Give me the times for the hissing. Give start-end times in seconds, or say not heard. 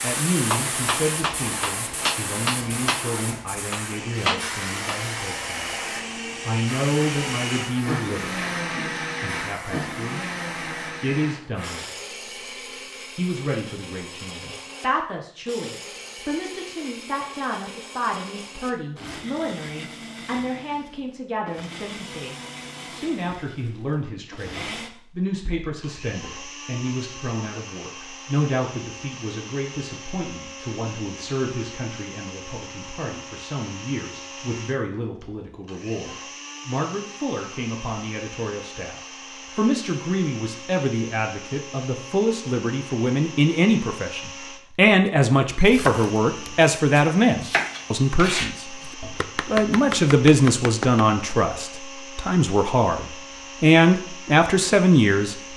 0.0-12.0.